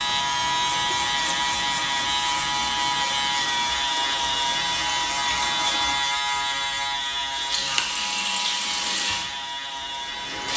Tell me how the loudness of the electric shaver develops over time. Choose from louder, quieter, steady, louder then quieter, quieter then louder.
quieter.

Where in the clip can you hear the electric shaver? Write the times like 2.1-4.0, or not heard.
0.0-10.5.